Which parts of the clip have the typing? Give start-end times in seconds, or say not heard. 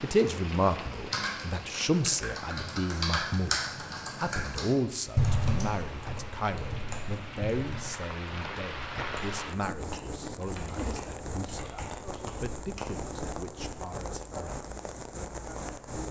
0.9-12.8.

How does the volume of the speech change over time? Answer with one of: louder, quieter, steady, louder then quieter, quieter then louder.
quieter.